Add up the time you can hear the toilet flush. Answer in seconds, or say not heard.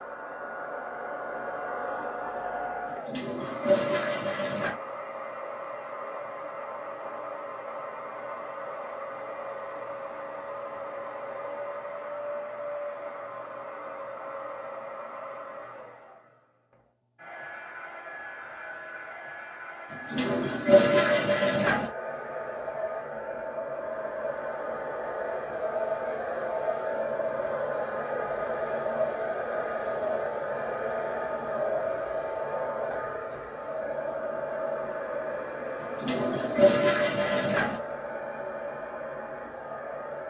6 s.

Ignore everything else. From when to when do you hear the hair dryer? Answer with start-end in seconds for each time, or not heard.
0.0-40.2.